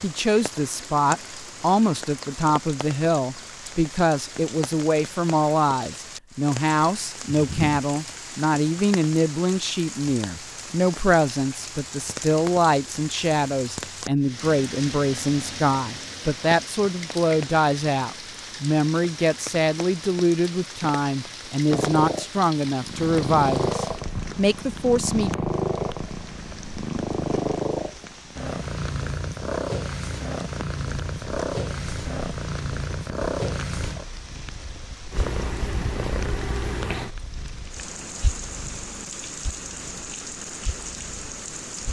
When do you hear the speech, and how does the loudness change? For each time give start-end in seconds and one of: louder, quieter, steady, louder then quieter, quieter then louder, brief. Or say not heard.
0.0-25.4 steady.